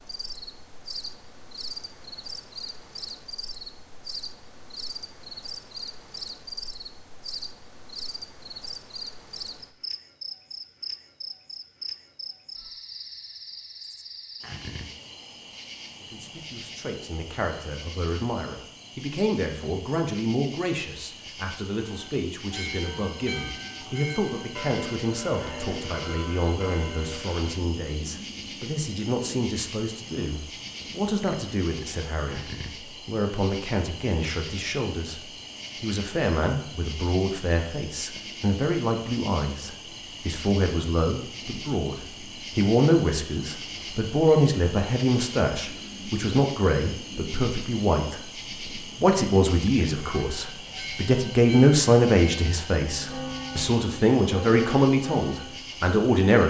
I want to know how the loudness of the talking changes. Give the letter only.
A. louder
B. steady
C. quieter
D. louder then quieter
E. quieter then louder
A.